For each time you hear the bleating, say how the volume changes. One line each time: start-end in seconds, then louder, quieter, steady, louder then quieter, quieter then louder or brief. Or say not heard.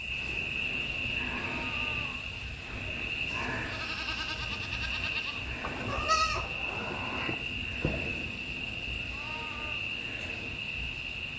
0.2-9.8 louder then quieter.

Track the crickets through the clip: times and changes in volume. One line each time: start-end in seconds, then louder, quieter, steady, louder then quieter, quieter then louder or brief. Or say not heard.
0.0-11.3 steady.